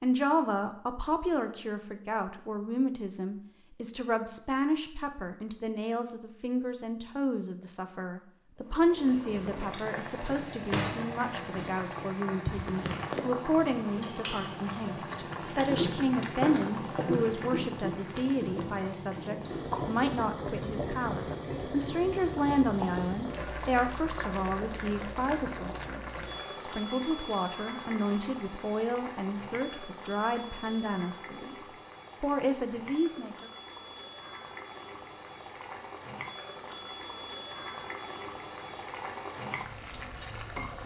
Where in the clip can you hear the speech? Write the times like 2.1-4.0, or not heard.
0.0-33.5.